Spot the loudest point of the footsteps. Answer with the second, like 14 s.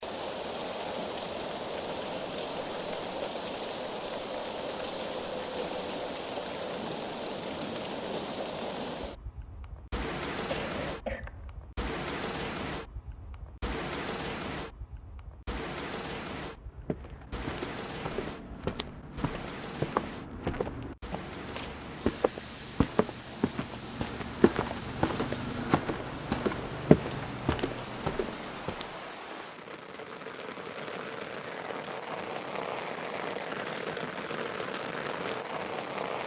27 s.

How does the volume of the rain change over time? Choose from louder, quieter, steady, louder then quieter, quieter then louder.
quieter then louder.